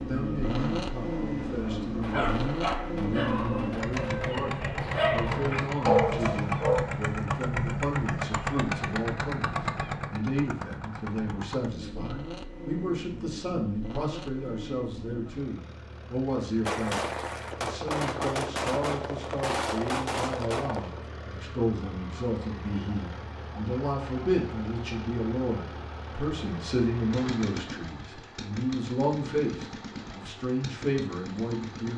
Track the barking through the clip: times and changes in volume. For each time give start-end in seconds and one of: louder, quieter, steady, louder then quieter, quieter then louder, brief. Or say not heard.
0.1-6.8 louder.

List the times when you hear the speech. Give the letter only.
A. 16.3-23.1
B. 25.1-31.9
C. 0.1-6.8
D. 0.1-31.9
D.